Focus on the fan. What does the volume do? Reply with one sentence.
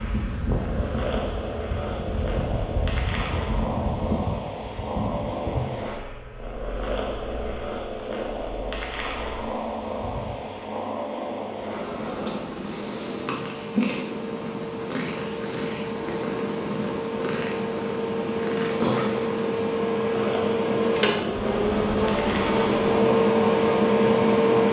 The volume of the fan goes down, then up.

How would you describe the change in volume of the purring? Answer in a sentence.
The volume of the purring stays about the same.